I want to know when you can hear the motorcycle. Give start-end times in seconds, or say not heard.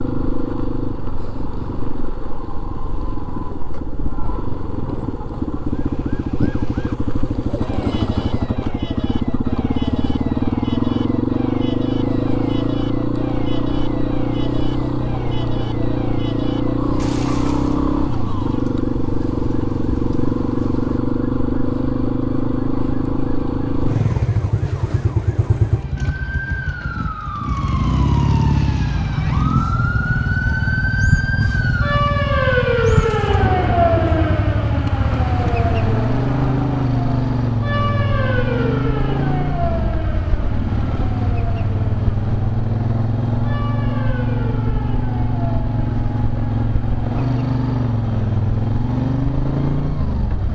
0.0-50.4.